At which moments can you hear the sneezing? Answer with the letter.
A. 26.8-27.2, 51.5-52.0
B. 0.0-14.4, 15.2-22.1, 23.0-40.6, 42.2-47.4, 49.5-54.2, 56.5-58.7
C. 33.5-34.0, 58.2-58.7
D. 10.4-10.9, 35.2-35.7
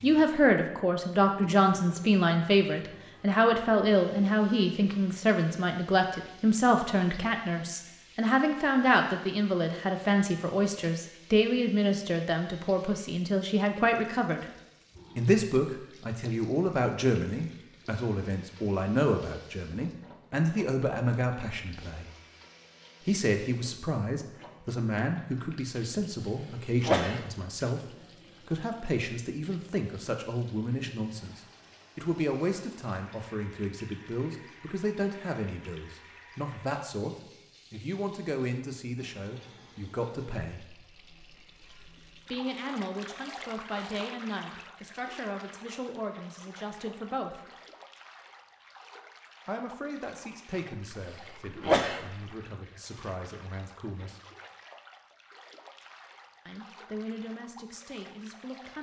A.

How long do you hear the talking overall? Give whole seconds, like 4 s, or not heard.
51 s.